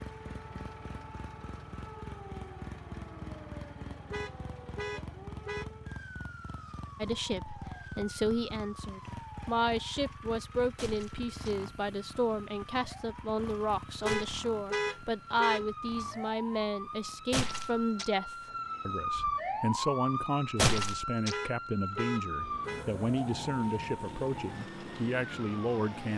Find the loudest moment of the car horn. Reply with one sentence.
The loudest moment of the car horn is at 15 seconds.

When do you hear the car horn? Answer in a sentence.
You can hear the car horn from 4.1 to 5.7 s, from 14.0 to 15.7 s and from 21.3 to 22.9 s.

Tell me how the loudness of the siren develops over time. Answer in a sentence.
The loudness of the siren goes up.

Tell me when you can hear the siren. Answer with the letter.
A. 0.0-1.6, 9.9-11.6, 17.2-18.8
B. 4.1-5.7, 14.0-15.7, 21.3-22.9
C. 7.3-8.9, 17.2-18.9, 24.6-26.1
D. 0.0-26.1
D.